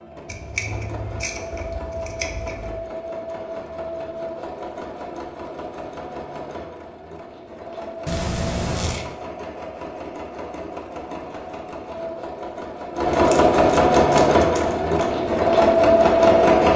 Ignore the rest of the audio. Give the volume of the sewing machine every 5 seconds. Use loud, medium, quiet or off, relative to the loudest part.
quiet, quiet, medium, loud.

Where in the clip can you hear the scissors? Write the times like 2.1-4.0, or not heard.
0.2-2.8, 8.1-9.1, 13.1-15.1.